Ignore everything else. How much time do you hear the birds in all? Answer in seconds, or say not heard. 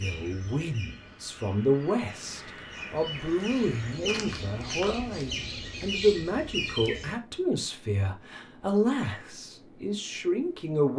7 s.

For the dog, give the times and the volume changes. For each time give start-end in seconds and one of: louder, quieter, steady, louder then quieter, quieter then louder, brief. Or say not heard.
not heard.